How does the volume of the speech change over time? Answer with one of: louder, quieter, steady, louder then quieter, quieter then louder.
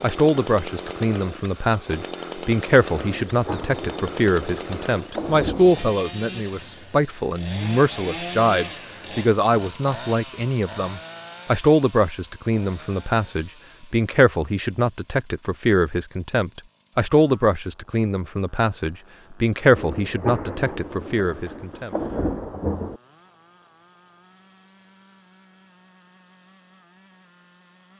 steady.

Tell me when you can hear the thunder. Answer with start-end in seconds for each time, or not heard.
3.0-6.0, 19.8-23.0.